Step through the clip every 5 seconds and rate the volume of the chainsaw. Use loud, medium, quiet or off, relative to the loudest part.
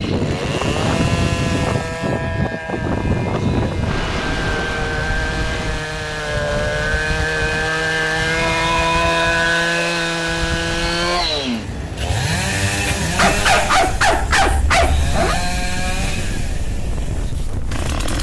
medium, loud, loud, medium.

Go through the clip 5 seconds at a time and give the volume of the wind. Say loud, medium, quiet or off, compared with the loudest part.
loud, medium, medium, medium.